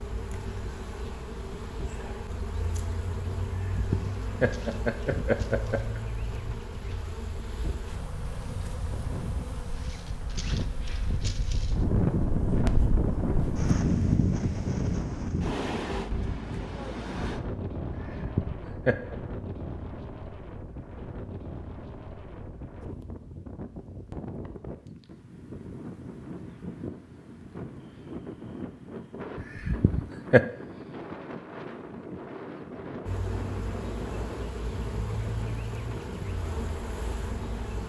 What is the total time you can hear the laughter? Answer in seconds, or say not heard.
5 s.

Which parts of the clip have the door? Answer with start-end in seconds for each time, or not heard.
not heard.